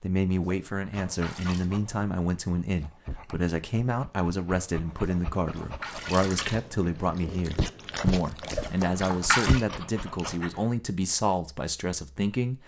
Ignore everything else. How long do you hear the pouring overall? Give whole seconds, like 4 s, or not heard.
4 s.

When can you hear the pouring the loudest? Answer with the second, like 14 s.
9 s.